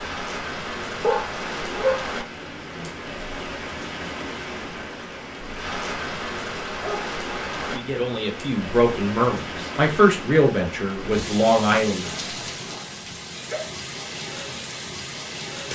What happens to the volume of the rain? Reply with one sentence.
The volume of the rain stays about the same.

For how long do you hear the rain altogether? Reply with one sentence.
You can hear the rain for 16 seconds altogether.